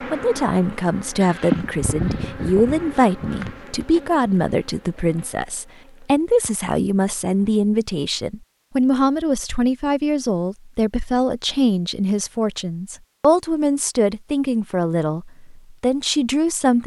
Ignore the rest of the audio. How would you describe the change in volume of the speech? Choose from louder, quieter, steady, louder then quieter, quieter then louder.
steady.